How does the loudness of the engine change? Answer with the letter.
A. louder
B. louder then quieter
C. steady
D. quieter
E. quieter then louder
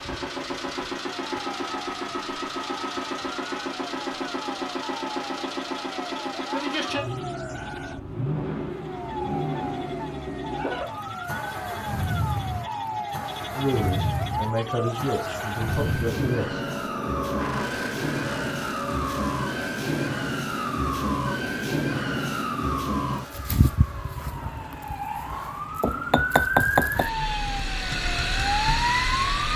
D.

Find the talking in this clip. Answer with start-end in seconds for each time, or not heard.
13.5-16.6.